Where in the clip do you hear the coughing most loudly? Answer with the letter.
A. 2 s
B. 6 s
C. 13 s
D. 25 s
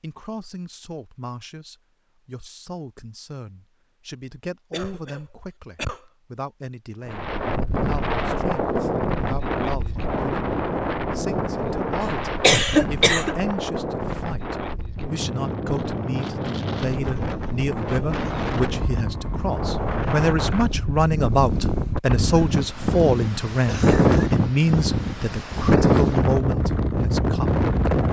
C.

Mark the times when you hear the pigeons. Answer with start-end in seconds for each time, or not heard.
not heard.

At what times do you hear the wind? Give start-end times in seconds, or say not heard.
7.0-28.0.